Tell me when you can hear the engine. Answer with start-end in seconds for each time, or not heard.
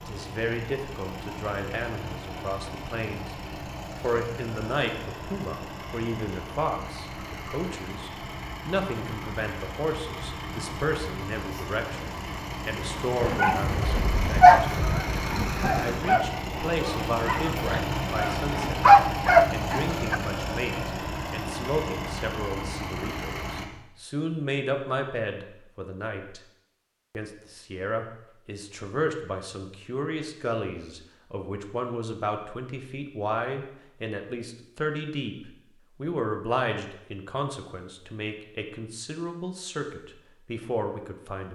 0.0-23.6.